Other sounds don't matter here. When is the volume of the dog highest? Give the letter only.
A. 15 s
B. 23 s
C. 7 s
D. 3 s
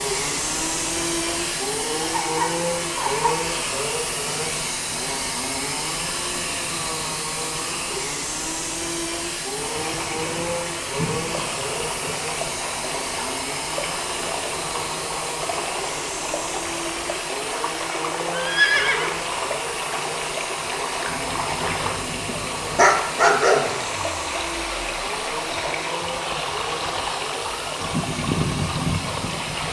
B.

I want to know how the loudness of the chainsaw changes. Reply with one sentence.
The loudness of the chainsaw goes down.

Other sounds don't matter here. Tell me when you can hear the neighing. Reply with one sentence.
The neighing can be heard from 18.3 to 19.3 s.